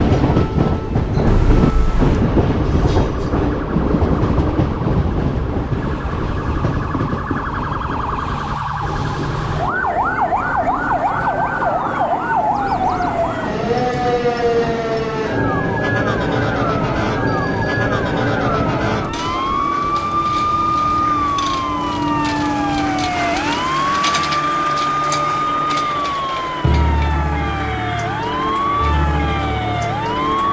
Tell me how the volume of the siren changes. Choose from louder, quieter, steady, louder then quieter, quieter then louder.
louder.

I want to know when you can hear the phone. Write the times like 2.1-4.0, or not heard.
1.2-2.3, 17.2-17.8.